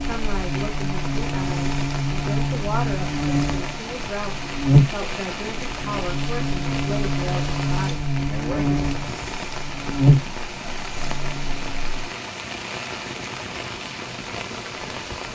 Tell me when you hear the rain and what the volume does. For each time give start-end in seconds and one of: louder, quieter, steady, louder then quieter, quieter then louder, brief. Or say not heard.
0.0-15.2 steady.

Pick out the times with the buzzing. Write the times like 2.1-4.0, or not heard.
0.0-12.1.